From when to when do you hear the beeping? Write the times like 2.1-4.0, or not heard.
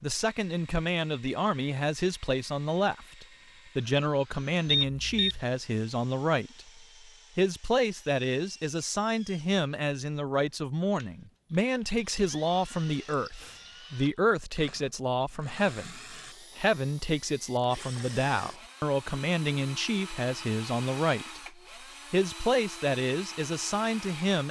4.7-5.4.